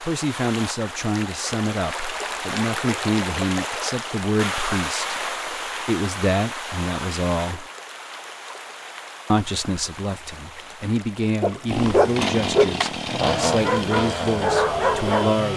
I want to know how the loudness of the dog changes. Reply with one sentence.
The volume of the dog goes down, then up.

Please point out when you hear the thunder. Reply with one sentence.
The thunder can't be heard in this clip.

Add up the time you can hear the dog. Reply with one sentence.
You can hear the dog for 4 seconds altogether.